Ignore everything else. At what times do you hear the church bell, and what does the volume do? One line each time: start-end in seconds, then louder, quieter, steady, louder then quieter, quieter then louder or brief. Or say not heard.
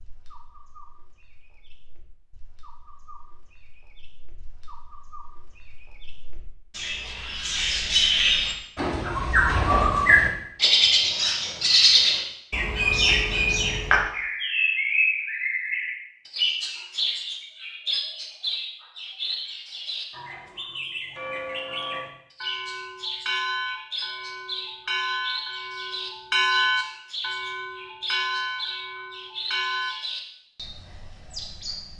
21.1-29.9 louder then quieter.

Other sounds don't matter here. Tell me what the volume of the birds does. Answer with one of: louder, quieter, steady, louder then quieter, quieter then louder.
louder then quieter.